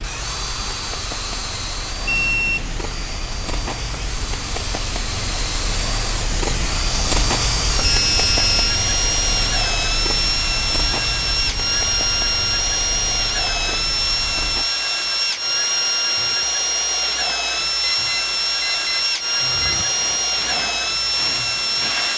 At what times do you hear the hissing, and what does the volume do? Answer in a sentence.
The hissing can be heard from 0.0 to 22.1 s, getting louder then quieter.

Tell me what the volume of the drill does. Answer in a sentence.
The loudness of the drill goes up.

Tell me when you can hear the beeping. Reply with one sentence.
The beeping can be heard from 2.0 to 2.8 s, from 7.8 to 8.8 s and from 18.1 to 19.9 s.